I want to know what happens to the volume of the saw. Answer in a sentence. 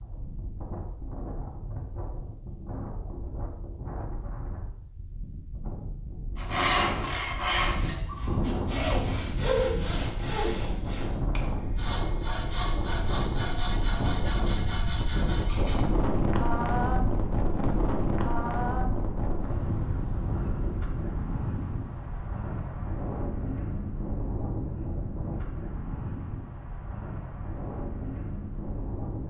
The loudness of the saw goes down.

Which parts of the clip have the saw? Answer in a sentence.
The saw can be heard from 6.3 to 15.8 s.